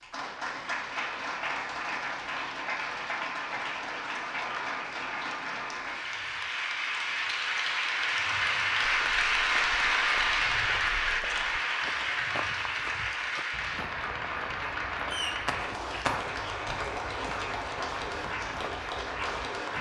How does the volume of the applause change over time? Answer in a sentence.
The loudness of the applause goes up, then down.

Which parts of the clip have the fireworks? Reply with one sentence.
You can hear the fireworks from 15.1 to 16.8 s.